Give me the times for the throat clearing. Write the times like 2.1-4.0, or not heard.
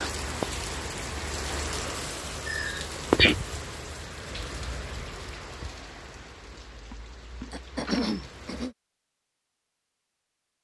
2.5-3.4, 7.5-8.8.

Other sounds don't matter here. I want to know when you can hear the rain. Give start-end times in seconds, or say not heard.
0.0-8.7.